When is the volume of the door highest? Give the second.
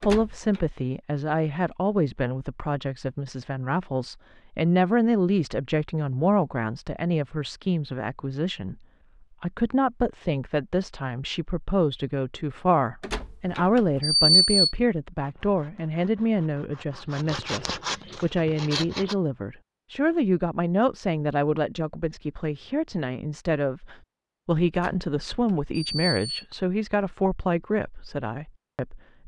14 s.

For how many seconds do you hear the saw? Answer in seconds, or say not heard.
4 s.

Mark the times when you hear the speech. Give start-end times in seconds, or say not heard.
0.0-8.8, 9.4-29.2.